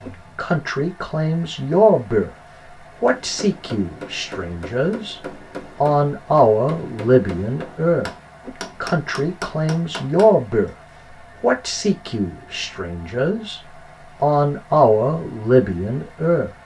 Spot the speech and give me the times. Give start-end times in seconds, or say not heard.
0.0-2.3, 3.0-10.7, 11.4-13.6, 14.2-16.5.